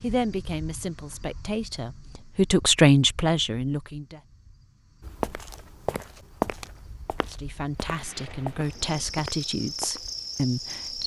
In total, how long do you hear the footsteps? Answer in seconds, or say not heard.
5 s.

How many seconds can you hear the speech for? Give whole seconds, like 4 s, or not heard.
8 s.